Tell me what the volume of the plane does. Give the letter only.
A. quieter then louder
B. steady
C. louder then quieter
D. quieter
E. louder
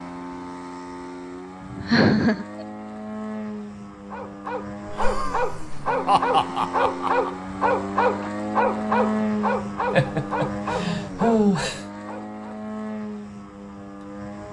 C.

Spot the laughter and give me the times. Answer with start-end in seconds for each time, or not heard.
1.6-2.6, 4.8-7.3, 9.9-11.8.